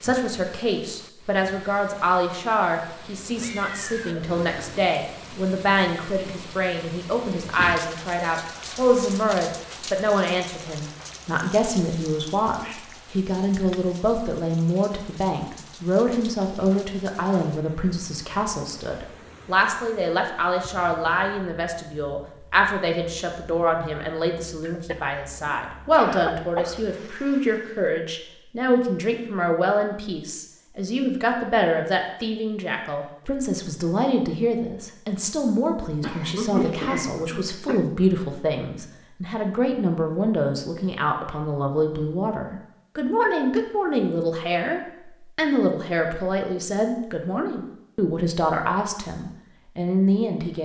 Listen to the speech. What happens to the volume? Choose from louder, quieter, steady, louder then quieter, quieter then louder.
steady.